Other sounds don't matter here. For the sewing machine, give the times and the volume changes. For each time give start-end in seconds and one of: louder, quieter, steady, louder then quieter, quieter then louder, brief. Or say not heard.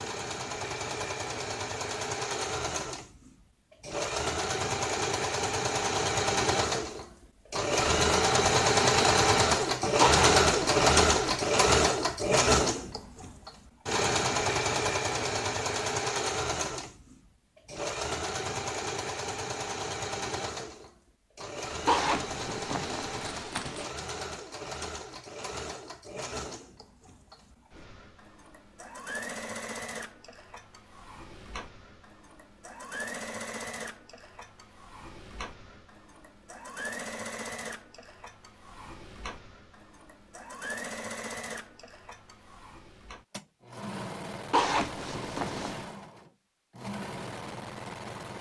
0.0-48.3 quieter.